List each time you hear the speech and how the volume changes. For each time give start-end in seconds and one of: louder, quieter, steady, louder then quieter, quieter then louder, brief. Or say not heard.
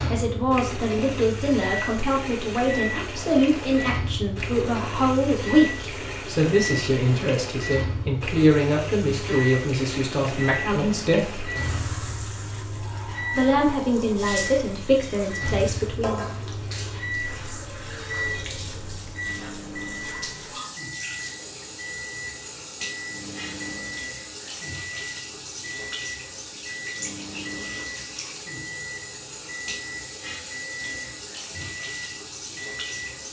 0.1-11.5 steady
13.3-16.2 brief.